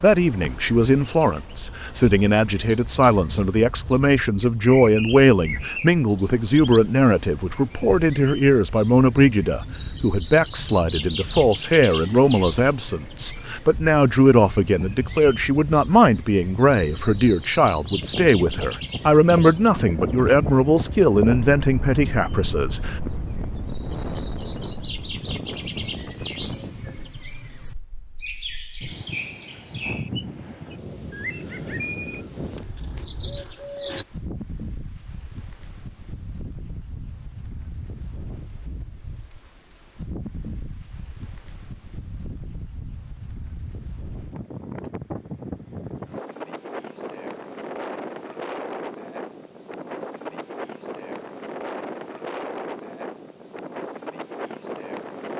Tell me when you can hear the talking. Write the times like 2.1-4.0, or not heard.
0.0-22.9.